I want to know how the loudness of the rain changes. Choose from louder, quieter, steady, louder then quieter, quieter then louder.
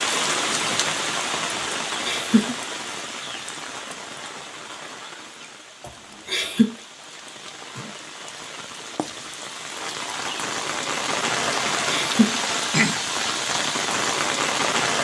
quieter then louder.